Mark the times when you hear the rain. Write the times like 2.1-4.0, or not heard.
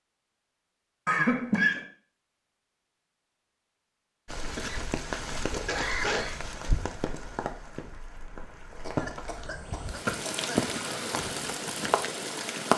4.2-12.7.